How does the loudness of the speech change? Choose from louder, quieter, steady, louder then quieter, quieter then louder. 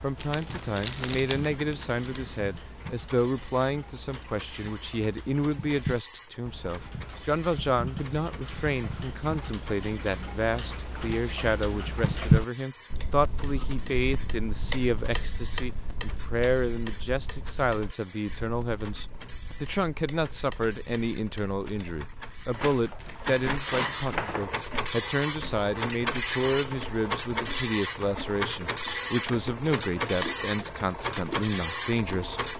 steady.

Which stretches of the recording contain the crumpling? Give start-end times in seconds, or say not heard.
0.2-2.2, 22.5-24.5.